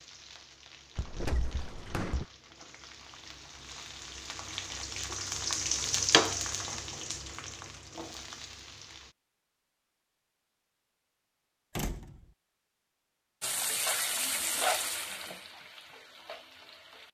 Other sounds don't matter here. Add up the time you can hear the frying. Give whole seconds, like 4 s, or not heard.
13 s.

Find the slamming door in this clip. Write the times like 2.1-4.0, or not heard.
0.9-2.2, 11.8-12.2.